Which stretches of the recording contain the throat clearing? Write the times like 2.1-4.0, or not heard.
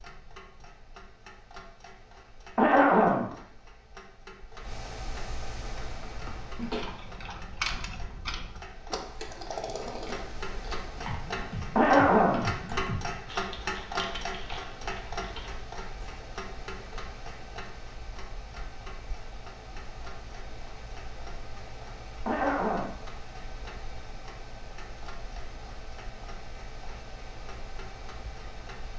2.5-3.3, 11.8-12.5, 22.2-22.9.